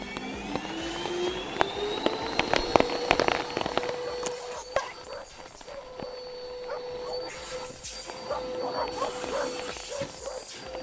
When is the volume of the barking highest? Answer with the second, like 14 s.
9 s.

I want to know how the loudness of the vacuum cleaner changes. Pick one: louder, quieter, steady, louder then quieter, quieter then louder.
quieter then louder.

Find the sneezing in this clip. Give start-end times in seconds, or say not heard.
4.2-5.0.